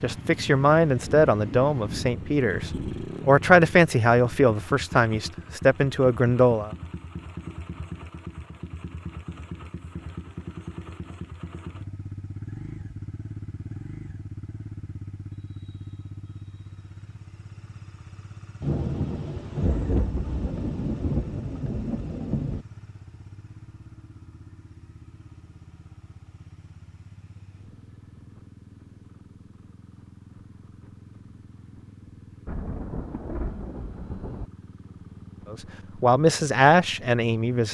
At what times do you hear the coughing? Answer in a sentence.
The coughing can't be heard in this clip.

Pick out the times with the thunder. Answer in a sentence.
The thunder can be heard from 1.1 to 3.0 s, from 18.6 to 22.6 s and from 32.5 to 34.5 s.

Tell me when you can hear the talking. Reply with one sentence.
You can hear the talking from 0.0 to 6.7 s and from 35.5 to 37.6 s.